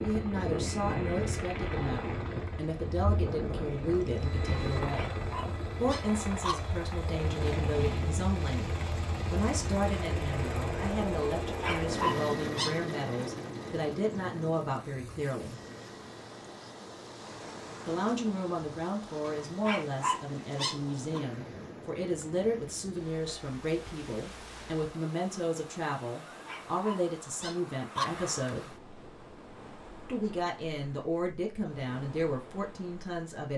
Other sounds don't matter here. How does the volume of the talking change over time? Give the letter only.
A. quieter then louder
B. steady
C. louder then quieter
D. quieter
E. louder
B.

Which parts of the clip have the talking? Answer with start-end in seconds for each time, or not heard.
0.0-5.1, 5.8-15.6, 17.9-28.7, 30.1-33.5.